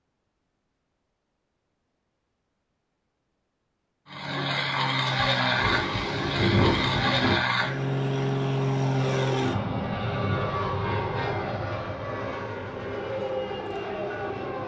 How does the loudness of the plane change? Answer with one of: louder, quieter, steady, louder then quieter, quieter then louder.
quieter.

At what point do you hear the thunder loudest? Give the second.
7 s.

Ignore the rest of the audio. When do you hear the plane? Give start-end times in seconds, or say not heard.
4.0-14.6.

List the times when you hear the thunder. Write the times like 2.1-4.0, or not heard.
5.0-7.4.